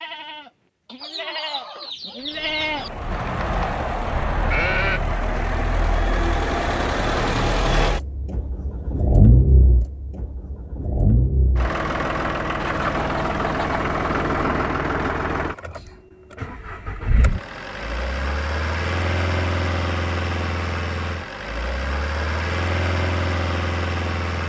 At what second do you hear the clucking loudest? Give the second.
13 s.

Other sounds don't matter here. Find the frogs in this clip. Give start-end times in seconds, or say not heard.
not heard.